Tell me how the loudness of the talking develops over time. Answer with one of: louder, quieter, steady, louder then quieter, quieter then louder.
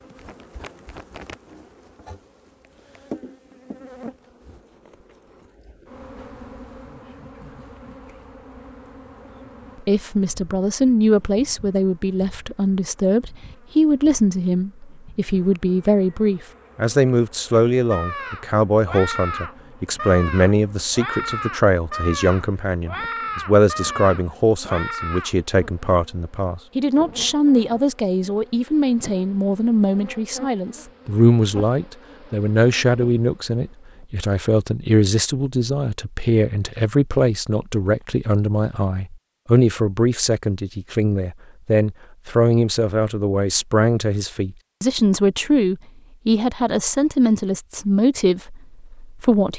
steady.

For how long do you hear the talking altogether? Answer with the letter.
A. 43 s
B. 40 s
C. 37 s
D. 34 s
B.